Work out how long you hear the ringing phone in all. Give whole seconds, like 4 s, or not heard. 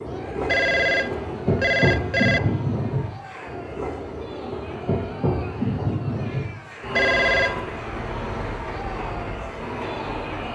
3 s.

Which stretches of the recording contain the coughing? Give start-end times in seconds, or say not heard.
not heard.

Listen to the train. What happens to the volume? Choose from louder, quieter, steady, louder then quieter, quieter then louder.
quieter.